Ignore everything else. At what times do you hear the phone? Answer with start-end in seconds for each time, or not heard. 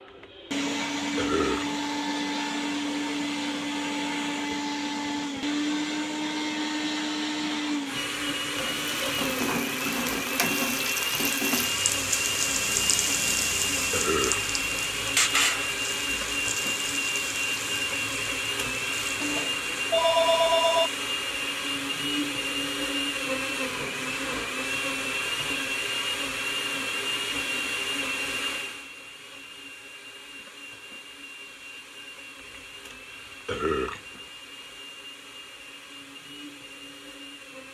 19.4-20.9.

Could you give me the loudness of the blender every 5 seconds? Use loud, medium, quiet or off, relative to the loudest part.
loud, loud, loud, loud, loud, loud, quiet, quiet.